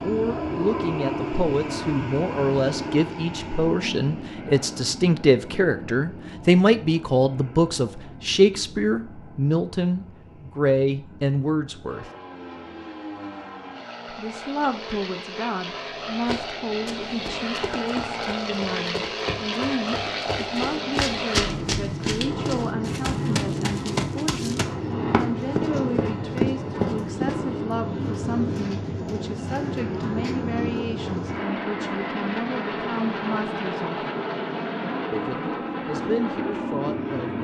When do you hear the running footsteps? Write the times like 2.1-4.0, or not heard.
16.2-27.4.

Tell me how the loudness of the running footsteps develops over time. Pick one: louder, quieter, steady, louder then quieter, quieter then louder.
louder.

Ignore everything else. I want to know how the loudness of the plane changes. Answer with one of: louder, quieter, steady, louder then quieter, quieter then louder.
quieter then louder.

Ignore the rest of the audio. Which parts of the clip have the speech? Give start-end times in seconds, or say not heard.
0.0-12.1, 14.1-34.0, 35.1-37.3.